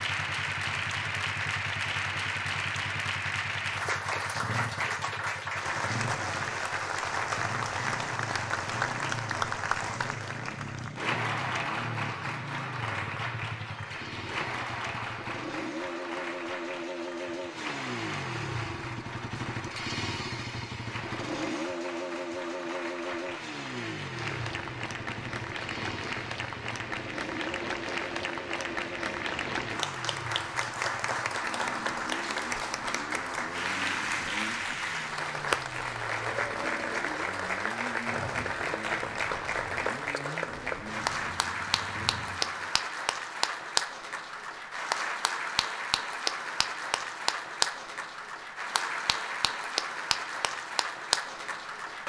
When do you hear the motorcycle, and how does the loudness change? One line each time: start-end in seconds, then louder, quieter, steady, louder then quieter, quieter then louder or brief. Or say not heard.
0.0-42.7 louder then quieter.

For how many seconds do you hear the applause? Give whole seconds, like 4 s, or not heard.
52 s.